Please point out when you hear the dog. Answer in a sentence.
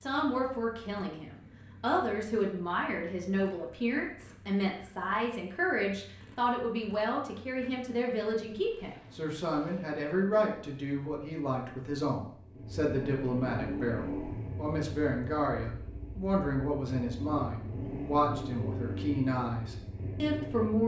The dog can't be heard in this clip.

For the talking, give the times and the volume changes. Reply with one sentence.
The talking can be heard from 0.0 to 20.8 s, at a steady volume.